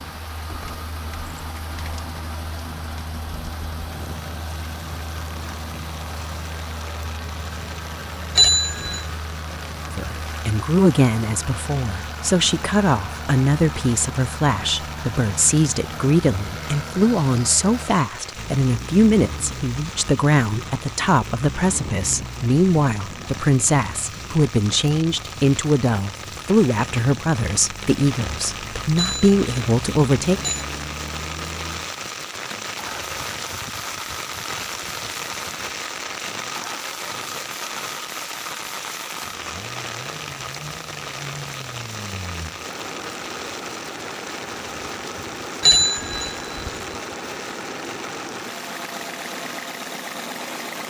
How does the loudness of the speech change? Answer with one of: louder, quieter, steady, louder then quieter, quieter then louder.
steady.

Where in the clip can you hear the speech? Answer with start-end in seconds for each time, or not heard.
9.9-30.4.